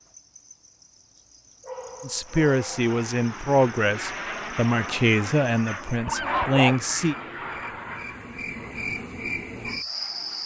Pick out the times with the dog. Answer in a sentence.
The dog can be heard from 1.6 to 2.8 s and from 5.9 to 7.5 s.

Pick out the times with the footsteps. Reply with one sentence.
You can't hear the footsteps here.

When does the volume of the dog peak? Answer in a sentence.
The loudest moment of the dog is at 7 seconds.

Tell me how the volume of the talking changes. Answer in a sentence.
The volume of the talking stays about the same.